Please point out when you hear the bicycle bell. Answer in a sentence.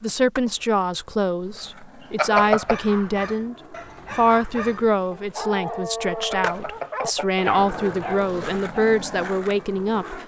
The bicycle bell can be heard from 2.1 to 2.8 s and from 6.3 to 7.4 s.